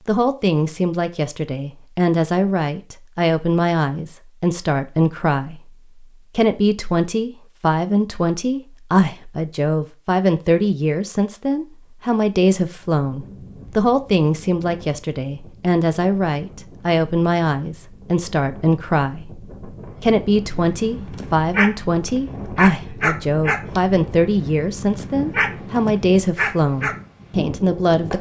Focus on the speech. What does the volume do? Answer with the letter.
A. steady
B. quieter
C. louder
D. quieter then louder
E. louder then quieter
A.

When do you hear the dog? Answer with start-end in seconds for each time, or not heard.
20.6-26.9.